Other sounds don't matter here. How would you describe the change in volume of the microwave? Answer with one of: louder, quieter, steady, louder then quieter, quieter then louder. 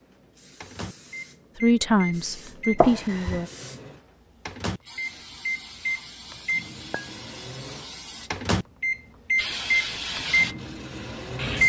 louder.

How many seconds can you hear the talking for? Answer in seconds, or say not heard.
2 s.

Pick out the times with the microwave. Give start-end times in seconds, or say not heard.
0.1-11.6.